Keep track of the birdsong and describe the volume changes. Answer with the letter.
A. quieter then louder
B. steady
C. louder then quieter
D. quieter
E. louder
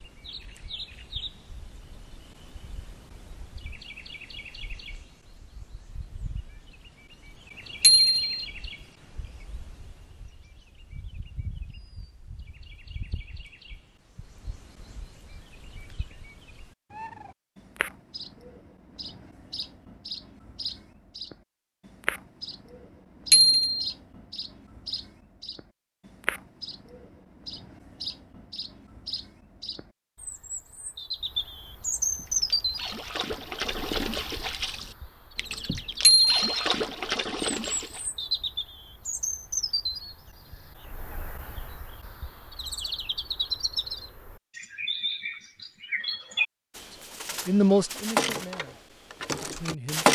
E.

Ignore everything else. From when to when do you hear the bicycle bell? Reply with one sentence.
You can hear the bicycle bell from 7.8 to 8.4 s, from 23.3 to 23.9 s and from 36.0 to 36.5 s.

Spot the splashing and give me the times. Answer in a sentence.
You can hear the splashing from 32.1 to 38.0 s.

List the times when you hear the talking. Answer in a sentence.
The talking can be heard from 46.9 to 50.0 s.